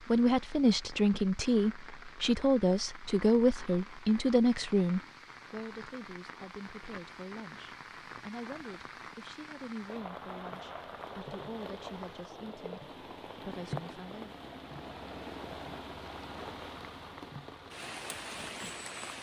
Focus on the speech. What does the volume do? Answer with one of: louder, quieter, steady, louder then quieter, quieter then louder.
quieter.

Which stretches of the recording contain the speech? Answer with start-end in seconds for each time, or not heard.
0.1-14.3.